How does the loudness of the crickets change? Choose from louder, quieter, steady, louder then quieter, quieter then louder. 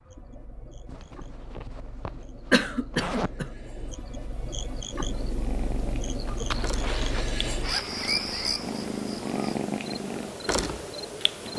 louder.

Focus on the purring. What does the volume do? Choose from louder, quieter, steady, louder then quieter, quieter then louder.
louder.